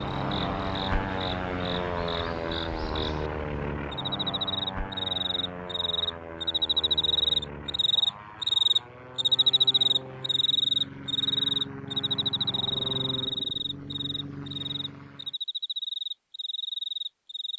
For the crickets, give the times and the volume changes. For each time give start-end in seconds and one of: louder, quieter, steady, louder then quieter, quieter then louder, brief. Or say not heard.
0.0-17.5 louder then quieter.